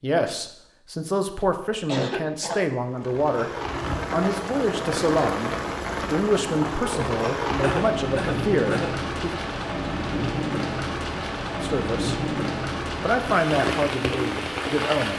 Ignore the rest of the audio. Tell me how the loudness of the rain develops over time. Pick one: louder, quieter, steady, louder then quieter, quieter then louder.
steady.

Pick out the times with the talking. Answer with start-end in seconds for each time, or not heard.
0.0-3.5, 4.1-9.3, 11.6-12.2, 13.0-15.1.